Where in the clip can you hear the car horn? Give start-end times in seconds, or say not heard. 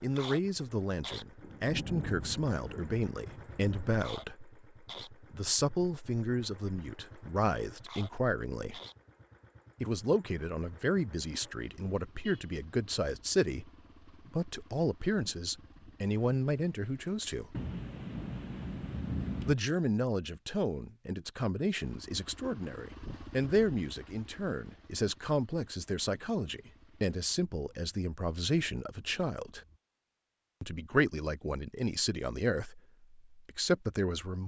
not heard.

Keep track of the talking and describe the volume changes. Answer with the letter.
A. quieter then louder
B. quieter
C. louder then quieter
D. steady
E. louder
D.